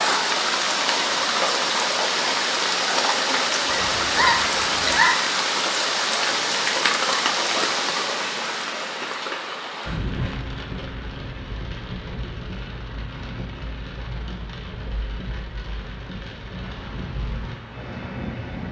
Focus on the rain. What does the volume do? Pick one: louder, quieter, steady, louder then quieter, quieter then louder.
quieter.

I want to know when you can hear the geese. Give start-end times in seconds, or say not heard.
3.6-5.2.